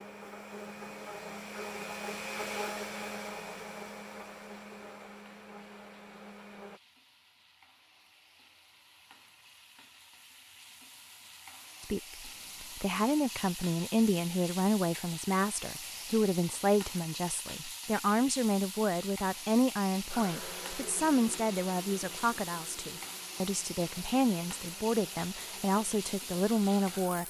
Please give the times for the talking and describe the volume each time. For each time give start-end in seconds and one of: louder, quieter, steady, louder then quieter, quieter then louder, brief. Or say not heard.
11.8-27.2 steady.